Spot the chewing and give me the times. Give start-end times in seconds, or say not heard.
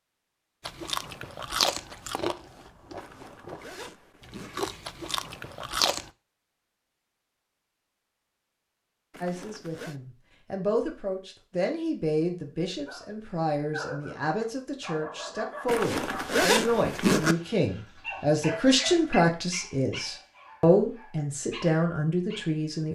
0.7-6.1.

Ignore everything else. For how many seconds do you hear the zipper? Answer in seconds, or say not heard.
4 s.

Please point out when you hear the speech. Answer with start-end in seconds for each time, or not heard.
9.2-22.9.